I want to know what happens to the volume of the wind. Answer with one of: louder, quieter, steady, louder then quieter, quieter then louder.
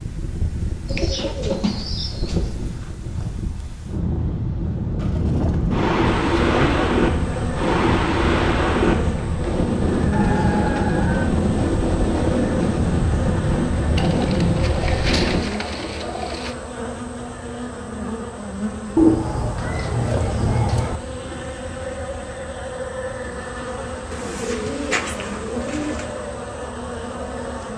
louder.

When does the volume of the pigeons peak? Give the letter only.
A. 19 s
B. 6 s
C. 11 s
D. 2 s
A.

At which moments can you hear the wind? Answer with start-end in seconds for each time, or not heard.
0.0-15.4.